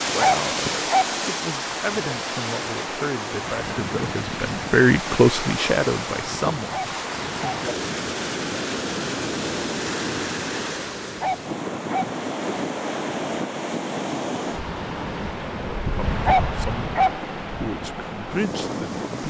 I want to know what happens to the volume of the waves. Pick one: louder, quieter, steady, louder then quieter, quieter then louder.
steady.